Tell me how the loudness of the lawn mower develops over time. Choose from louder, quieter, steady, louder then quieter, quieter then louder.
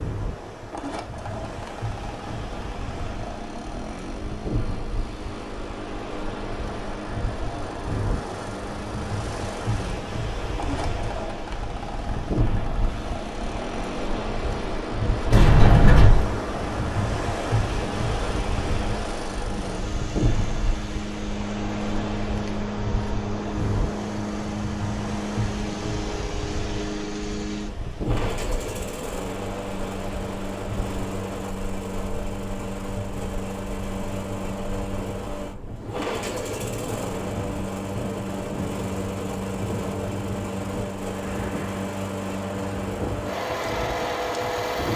louder.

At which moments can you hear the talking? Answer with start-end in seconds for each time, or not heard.
not heard.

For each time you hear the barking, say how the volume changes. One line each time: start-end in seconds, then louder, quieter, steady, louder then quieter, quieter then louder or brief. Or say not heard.
not heard.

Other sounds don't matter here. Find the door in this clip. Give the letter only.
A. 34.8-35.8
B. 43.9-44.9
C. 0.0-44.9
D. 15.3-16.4
D.